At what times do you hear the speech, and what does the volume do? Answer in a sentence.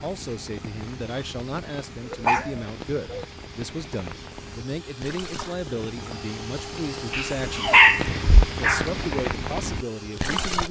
You can hear the speech from 0.0 to 7.8 s, at a steady volume; and briefly from 8.6 to 10.6 s.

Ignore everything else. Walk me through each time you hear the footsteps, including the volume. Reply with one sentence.
The footsteps can't be heard in this clip.